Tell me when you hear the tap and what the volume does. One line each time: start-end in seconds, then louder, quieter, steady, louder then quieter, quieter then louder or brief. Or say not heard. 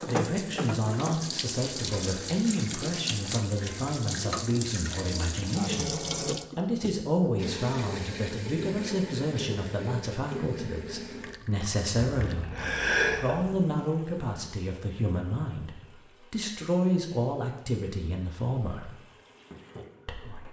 0.0-20.4 quieter.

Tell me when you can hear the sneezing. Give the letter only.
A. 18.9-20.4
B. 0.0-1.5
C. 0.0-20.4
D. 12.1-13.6
D.